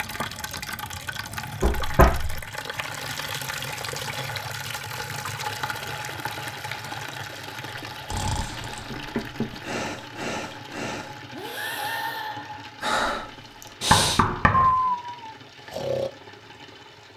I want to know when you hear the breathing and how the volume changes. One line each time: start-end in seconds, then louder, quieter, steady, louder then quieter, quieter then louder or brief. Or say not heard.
8.1-16.1 louder.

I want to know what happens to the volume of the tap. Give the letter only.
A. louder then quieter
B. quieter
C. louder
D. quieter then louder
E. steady
B.